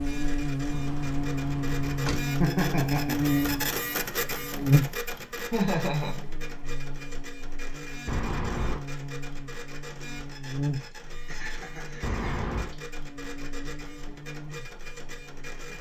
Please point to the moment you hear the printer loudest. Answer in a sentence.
The loudest moment of the printer is at 4 seconds.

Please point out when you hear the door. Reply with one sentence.
The door can be heard from 0.7 to 2.3 s, from 8.1 to 8.8 s and from 12.0 to 12.7 s.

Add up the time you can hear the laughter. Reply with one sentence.
You can hear the laughter for 3 seconds altogether.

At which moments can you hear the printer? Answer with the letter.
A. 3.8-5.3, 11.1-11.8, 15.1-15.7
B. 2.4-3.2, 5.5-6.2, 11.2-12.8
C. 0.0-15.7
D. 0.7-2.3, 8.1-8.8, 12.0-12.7
C.